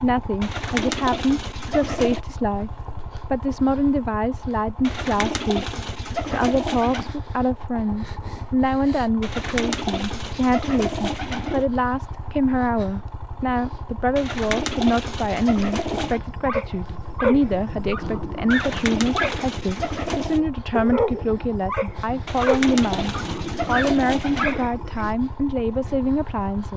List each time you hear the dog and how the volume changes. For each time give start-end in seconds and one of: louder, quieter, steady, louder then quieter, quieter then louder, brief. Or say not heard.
15.9-25.1 steady.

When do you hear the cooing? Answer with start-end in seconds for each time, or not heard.
0.4-2.2, 4.8-7.2, 9.2-11.7, 14.2-16.2, 18.5-20.4, 22.2-24.7.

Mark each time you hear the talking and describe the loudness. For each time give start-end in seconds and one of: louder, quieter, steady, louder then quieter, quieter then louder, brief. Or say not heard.
0.0-26.7 steady.